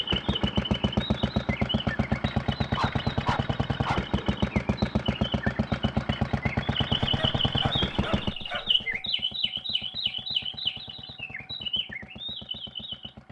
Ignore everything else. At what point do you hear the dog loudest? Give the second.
3 s.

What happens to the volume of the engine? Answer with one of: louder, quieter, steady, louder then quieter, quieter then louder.
quieter.